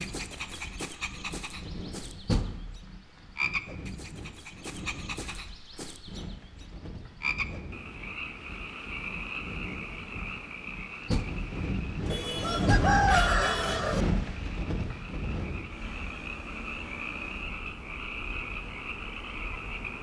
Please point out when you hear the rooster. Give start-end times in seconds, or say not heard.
12.1-14.1.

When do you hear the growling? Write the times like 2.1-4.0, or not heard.
not heard.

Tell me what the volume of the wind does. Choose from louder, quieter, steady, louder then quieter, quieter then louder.
louder then quieter.